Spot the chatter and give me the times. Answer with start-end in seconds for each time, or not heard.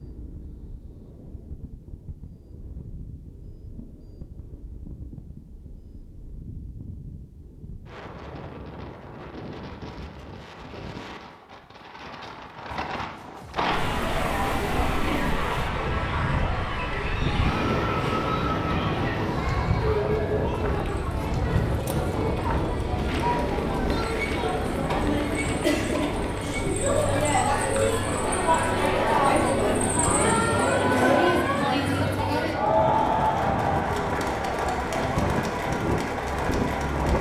13.6-37.1.